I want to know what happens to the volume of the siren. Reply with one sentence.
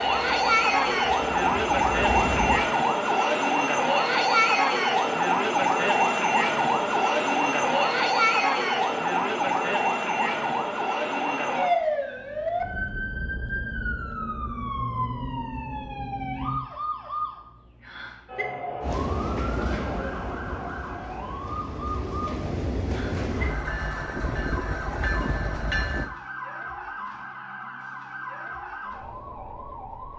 The loudness of the siren goes down.